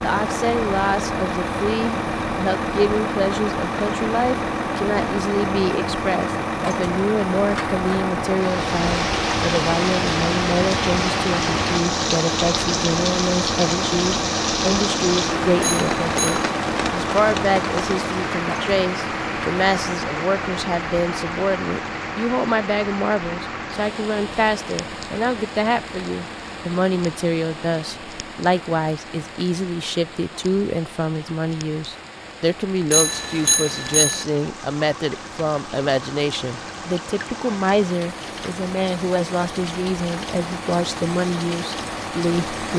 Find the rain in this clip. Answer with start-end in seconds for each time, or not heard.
8.3-42.7.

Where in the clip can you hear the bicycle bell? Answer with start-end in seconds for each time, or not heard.
15.6-16.5, 32.9-34.2.